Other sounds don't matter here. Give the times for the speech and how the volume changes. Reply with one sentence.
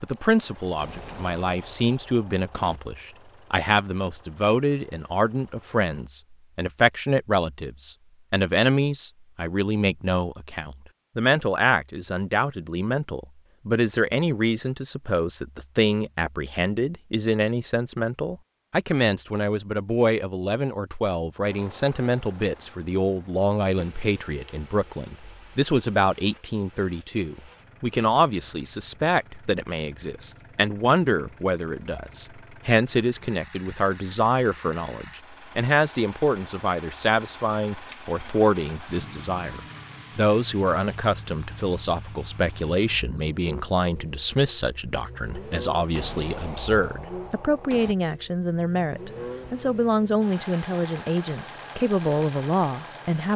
The speech can be heard from 0.0 to 53.3 s, at a steady volume.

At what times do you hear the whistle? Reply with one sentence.
You can't hear the whistle here.